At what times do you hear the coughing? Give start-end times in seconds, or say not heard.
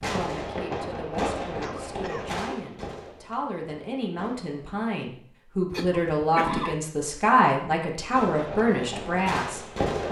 1.6-2.4, 5.7-6.9.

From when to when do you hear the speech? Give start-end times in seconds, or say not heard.
0.1-10.0.